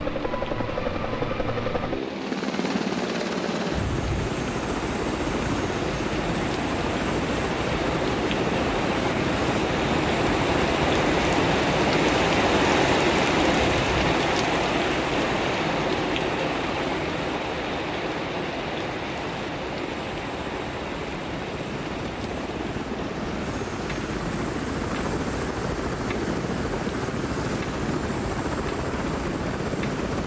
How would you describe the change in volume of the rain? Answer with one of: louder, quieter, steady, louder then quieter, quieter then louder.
louder then quieter.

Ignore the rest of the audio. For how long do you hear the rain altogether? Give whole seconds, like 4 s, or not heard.
30 s.